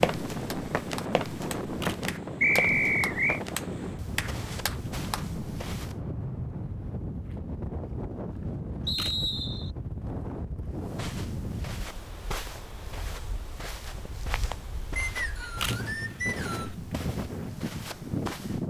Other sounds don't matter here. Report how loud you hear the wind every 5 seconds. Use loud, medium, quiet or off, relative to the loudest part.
loud, loud, medium, loud.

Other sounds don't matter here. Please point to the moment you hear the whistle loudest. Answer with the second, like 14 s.
3 s.